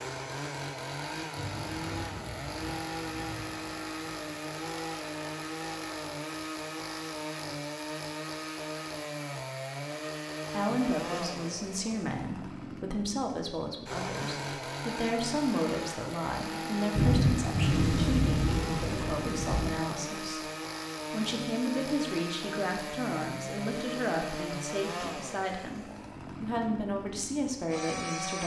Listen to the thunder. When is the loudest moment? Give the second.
17 s.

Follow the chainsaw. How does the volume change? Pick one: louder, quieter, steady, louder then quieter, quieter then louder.
steady.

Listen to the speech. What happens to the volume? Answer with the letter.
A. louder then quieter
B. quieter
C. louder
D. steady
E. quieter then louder
D.